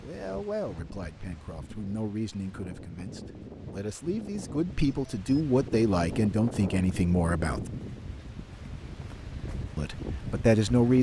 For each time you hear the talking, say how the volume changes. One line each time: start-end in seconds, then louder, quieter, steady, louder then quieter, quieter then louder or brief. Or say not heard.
0.0-7.7 louder
9.8-10.9 brief.